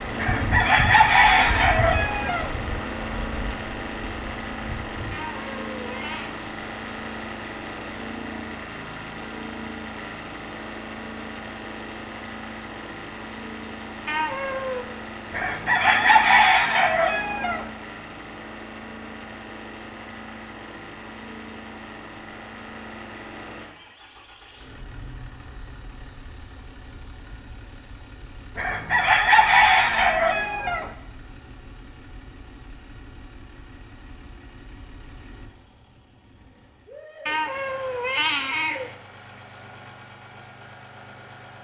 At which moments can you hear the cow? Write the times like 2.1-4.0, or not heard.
not heard.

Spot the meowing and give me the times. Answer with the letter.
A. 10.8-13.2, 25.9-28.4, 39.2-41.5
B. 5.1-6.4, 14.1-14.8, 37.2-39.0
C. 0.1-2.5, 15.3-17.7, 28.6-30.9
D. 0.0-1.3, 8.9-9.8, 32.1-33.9
B.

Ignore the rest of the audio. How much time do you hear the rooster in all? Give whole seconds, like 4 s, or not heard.
7 s.